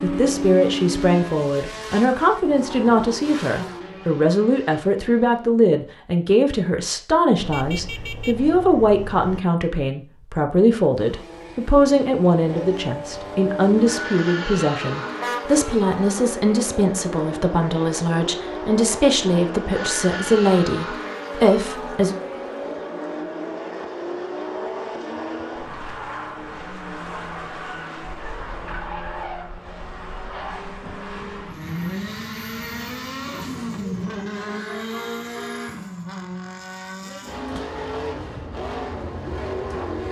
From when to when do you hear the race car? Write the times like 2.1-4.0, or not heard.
0.0-5.5, 10.9-40.0.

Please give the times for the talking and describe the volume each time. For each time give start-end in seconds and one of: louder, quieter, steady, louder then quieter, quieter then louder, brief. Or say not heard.
0.0-22.1 steady.